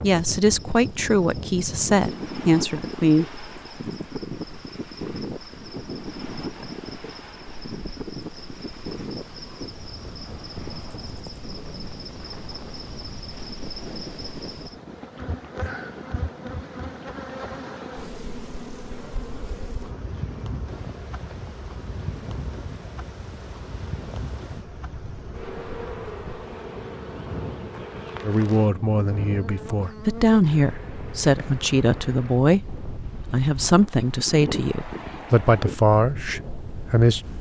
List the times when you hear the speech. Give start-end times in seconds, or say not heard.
0.0-3.4, 28.2-37.3.